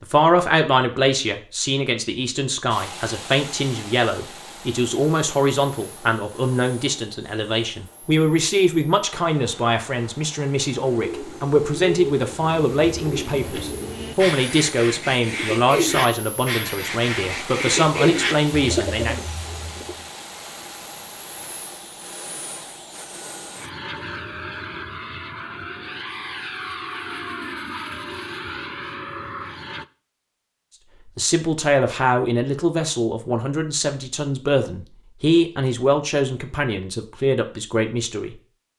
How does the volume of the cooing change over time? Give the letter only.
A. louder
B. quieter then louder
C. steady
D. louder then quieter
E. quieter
A.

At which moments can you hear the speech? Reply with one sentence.
You can hear the speech from 0.0 to 19.1 s and from 31.1 to 38.7 s.